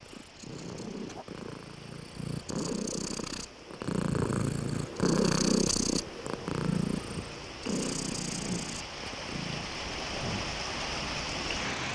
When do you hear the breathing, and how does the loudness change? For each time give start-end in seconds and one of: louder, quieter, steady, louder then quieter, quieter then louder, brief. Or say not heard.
not heard.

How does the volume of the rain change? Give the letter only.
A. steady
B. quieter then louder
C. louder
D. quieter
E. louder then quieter
C.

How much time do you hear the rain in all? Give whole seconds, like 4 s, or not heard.
12 s.